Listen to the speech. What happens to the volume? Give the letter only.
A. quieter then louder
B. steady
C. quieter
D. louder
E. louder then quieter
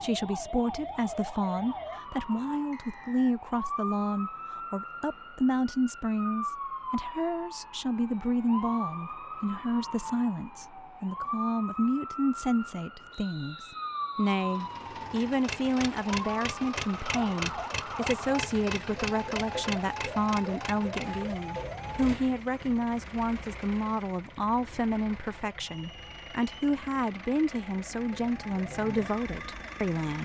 B.